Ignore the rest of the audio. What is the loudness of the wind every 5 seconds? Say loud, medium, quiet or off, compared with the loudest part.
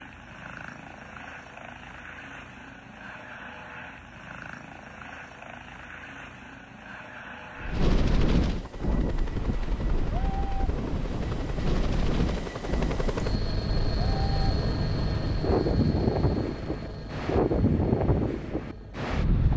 off, loud, medium, loud.